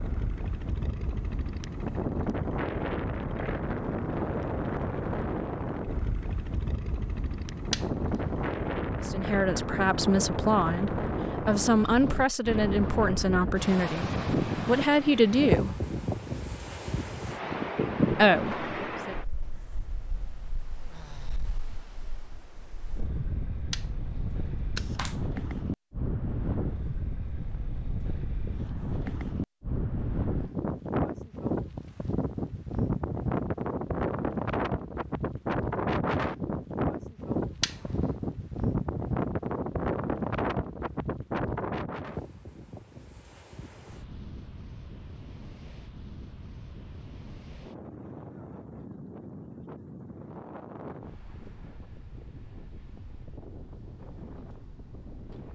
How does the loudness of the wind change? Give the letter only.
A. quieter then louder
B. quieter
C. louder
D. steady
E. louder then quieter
B.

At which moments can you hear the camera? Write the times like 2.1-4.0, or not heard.
7.7-8.4, 23.7-25.1, 37.6-38.1.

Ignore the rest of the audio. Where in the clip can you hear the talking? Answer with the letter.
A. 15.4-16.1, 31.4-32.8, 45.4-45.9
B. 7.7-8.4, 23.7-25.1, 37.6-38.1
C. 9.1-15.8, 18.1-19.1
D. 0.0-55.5
C.